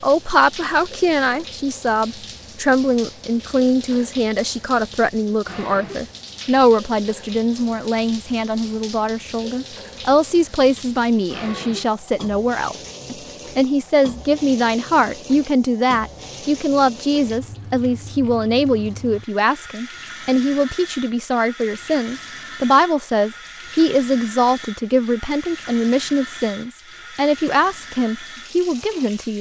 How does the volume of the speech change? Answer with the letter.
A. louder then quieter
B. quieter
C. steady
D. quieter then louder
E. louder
C.